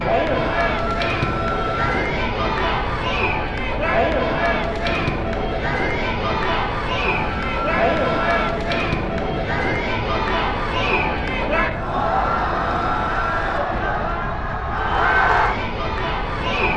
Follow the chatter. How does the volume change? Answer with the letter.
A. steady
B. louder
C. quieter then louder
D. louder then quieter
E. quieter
A.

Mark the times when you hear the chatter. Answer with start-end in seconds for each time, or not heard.
0.0-16.7.